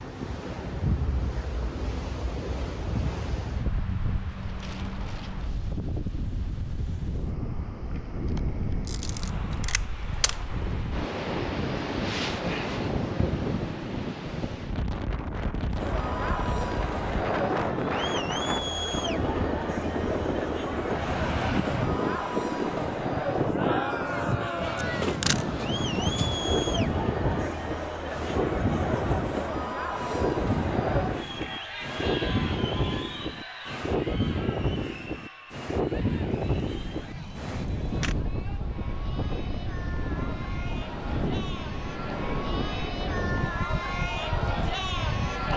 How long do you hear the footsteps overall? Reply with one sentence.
The footsteps can't be heard in this clip.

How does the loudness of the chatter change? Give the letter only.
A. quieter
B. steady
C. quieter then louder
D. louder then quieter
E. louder
C.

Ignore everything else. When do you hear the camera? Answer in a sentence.
The camera can be heard from 8.8 to 10.3 s, from 24.8 to 25.4 s and from 36.3 to 38.1 s.